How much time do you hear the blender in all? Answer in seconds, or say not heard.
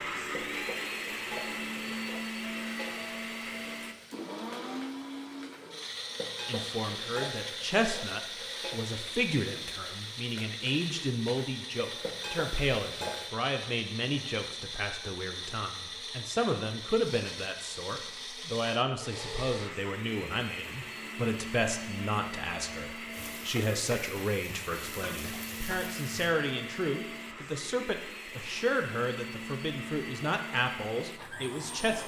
32 s.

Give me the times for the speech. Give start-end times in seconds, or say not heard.
6.5-32.0.